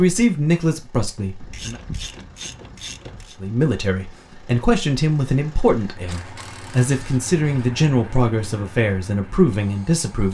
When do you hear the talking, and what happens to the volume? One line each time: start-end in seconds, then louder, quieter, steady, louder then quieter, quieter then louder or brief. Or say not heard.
0.0-1.8 brief
3.4-10.3 steady.